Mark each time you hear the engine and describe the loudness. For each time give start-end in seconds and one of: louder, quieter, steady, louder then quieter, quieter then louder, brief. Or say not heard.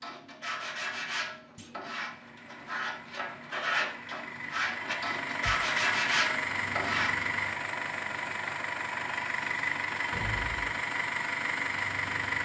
2.1-12.4 louder.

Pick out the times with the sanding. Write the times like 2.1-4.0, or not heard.
0.0-7.4.